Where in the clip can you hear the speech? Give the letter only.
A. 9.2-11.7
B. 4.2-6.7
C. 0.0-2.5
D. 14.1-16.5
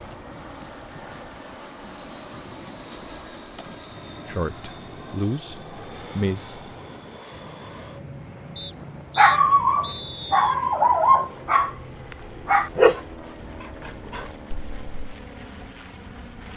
B.